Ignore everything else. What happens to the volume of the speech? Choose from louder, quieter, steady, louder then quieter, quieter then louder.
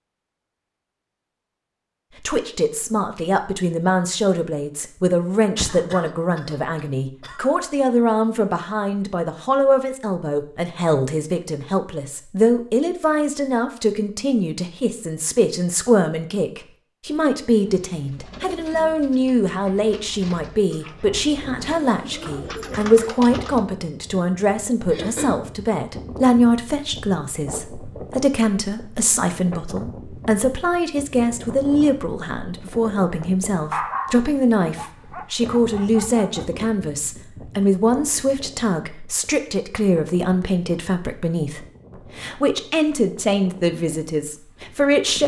steady.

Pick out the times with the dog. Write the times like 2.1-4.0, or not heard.
33.7-36.5.